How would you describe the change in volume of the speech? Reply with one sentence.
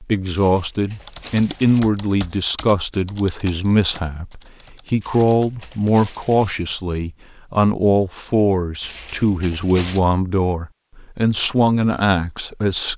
The loudness of the speech stays about the same.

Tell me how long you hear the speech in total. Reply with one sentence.
You can hear the speech for 13 seconds altogether.